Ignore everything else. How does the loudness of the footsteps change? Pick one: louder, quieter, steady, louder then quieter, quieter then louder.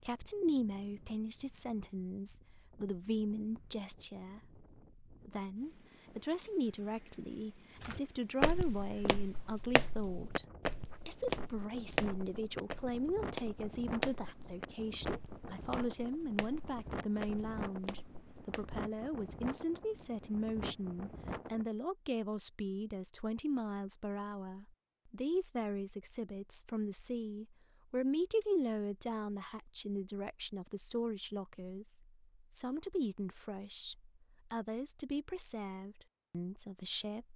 quieter.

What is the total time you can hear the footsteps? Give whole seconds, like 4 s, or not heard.
11 s.